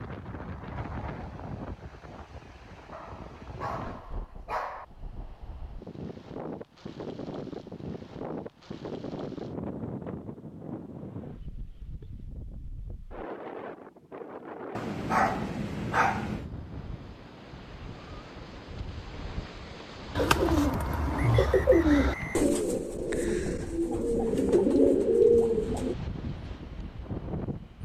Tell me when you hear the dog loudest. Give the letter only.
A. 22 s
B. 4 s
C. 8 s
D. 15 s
D.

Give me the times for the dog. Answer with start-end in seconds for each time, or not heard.
2.9-4.8, 14.8-16.4.